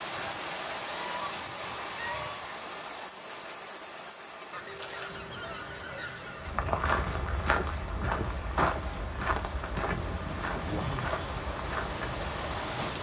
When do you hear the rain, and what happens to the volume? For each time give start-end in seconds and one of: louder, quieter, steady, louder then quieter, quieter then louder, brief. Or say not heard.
0.0-12.9 quieter then louder.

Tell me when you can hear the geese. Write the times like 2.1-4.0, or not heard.
0.1-2.5, 4.5-6.5, 9.9-11.1.